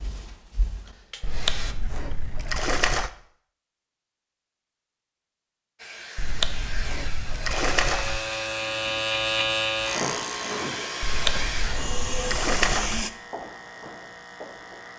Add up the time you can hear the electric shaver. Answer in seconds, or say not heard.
7 s.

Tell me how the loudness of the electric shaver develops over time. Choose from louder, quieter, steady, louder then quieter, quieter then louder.
quieter.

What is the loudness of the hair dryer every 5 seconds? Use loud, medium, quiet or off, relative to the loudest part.
medium, medium, loud.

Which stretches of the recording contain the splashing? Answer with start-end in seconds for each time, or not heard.
1.2-3.1, 6.2-8.2, 11.0-13.1.